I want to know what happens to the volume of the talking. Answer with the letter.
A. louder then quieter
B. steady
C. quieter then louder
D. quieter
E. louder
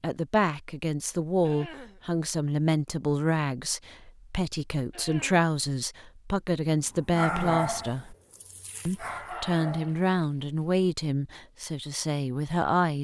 B.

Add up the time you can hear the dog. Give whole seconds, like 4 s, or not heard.
4 s.